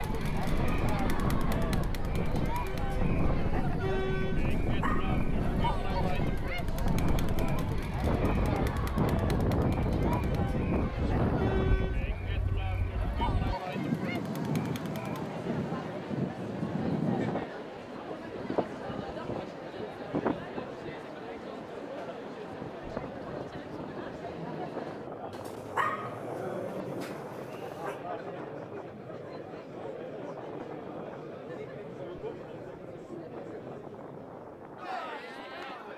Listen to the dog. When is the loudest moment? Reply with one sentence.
The volume of the dog peaks at 26 seconds.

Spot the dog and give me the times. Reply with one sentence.
The dog can be heard from 4.3 to 6.2 s and from 25.3 to 28.0 s.